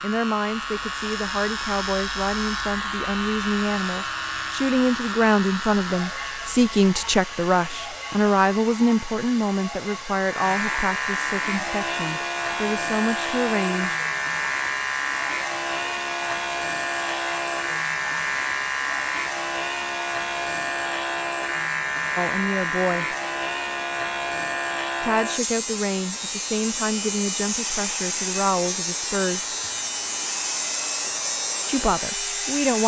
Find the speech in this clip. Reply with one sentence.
The speech can be heard from 0.0 to 13.9 s, from 22.1 to 23.1 s, from 25.0 to 29.5 s and from 31.6 to 32.8 s.